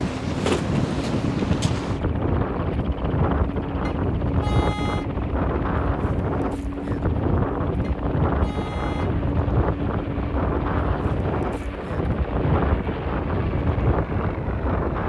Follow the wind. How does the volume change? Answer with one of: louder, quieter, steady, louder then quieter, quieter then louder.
steady.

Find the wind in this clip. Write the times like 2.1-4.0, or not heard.
0.0-15.0.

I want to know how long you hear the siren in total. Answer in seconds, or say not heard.
not heard.